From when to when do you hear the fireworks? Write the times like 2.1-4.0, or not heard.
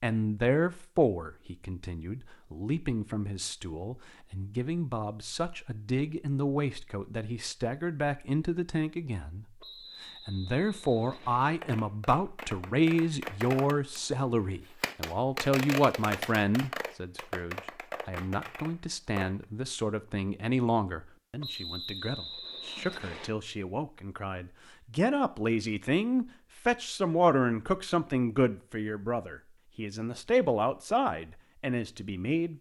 11.6-19.4.